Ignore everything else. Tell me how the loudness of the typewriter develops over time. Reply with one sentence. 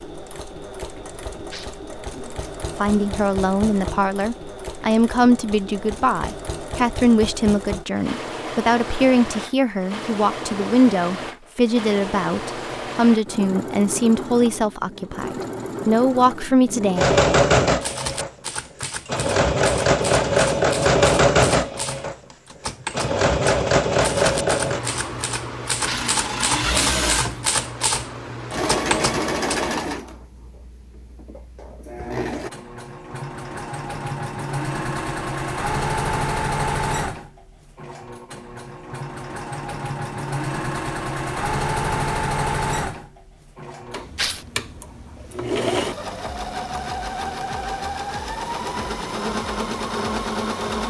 The loudness of the typewriter goes up.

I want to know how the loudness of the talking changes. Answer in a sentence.
The loudness of the talking stays about the same.